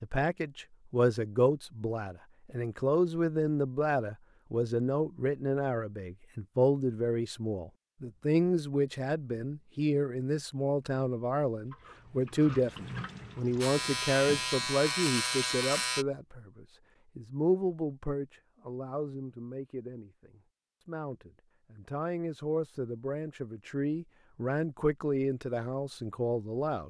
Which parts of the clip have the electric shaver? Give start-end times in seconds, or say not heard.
13.6-16.1.